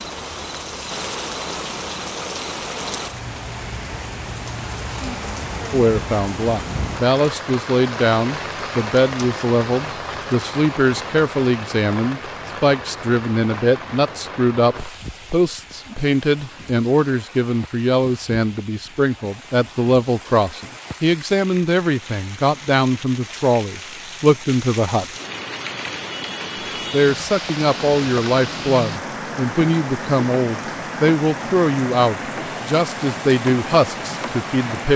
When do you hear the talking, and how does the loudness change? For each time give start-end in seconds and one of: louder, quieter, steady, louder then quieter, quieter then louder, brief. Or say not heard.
5.7-25.1 steady
26.9-34.9 steady.